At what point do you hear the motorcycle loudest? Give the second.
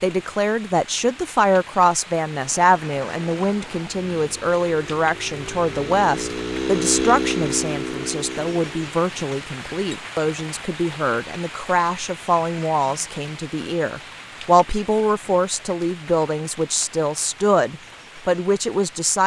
7 s.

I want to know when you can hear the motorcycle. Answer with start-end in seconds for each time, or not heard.
2.3-8.9.